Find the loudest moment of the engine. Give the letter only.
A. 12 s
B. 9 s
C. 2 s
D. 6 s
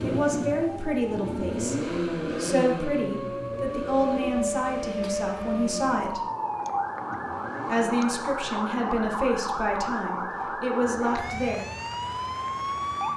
C.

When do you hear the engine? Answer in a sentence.
You can hear the engine from 0.0 to 8.0 s.